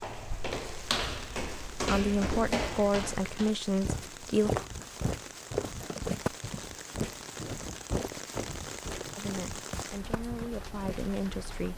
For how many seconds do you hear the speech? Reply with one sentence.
You can hear the speech for 5 seconds altogether.